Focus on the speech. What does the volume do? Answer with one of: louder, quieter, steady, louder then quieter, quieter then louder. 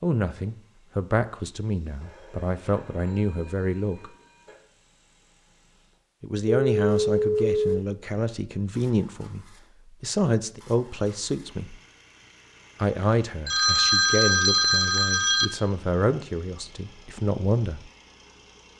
steady.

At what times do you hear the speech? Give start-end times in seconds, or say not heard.
0.0-4.1, 6.2-11.8, 12.8-17.9.